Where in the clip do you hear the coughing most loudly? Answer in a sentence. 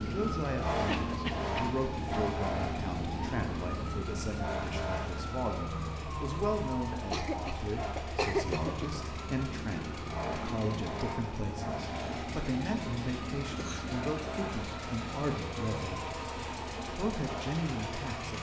The volume of the coughing peaks at 8 seconds.